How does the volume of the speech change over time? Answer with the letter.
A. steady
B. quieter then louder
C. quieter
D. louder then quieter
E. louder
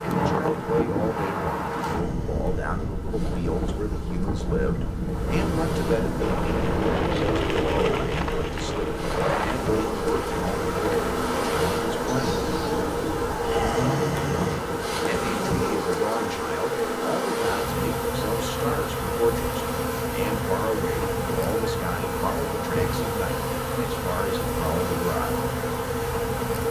A.